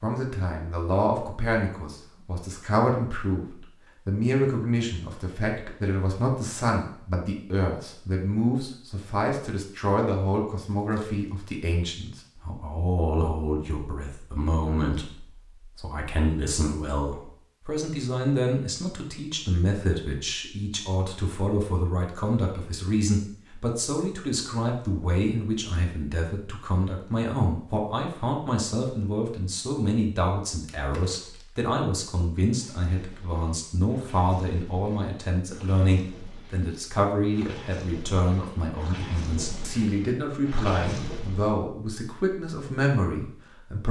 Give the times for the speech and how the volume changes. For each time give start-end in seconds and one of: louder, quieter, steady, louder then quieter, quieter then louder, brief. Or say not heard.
0.0-43.8 steady.